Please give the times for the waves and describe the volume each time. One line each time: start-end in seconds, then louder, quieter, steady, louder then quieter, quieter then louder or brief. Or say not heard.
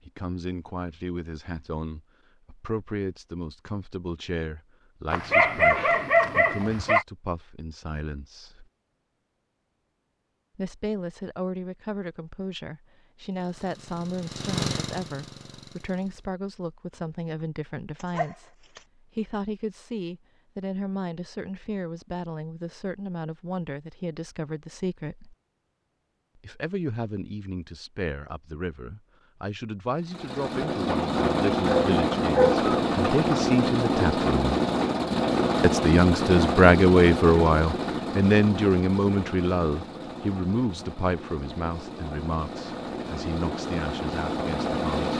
not heard.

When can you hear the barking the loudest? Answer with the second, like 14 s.
6 s.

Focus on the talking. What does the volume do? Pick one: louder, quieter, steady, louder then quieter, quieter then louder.
louder.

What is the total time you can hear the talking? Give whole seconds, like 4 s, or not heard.
41 s.